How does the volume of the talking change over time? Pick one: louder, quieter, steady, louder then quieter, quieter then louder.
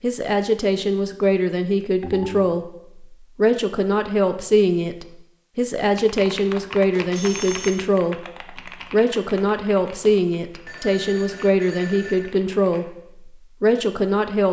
steady.